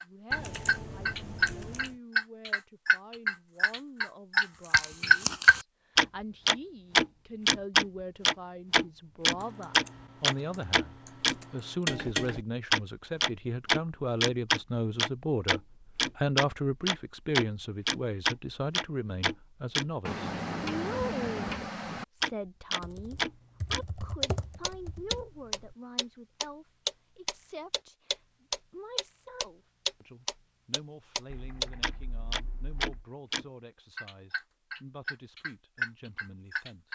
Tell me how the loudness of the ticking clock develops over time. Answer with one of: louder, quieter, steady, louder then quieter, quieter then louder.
quieter.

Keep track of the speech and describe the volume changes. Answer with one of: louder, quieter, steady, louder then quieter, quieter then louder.
louder then quieter.